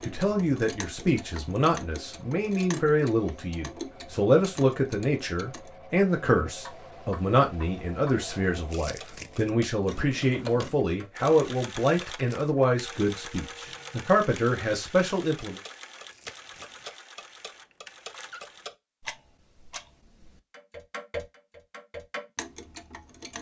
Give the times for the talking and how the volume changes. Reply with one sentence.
The talking can be heard from 0.0 to 15.6 s, at a steady volume.